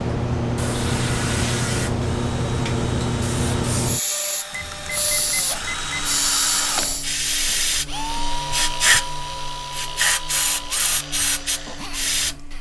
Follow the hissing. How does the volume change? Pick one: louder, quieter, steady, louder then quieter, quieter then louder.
steady.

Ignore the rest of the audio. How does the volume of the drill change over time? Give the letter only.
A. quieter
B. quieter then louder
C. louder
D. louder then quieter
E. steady
D.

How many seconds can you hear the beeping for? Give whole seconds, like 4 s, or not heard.
2 s.